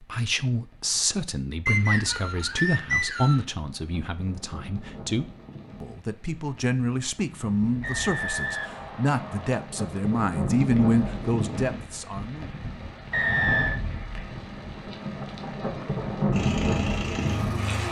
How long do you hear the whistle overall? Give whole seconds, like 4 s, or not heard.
4 s.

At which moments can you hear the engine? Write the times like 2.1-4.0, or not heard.
16.3-17.8.